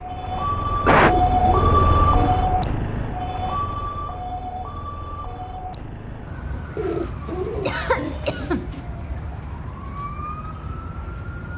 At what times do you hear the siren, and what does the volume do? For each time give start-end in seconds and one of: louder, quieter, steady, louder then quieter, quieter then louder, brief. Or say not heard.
0.0-11.5 quieter.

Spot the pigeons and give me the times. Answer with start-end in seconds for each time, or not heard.
0.9-2.5, 6.8-8.8.